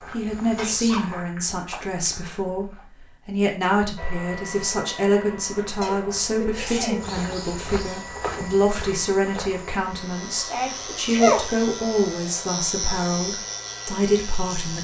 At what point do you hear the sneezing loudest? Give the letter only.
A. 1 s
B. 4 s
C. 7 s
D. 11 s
D.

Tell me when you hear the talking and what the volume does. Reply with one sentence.
You can hear the talking from 0.1 to 14.8 s, at a steady volume.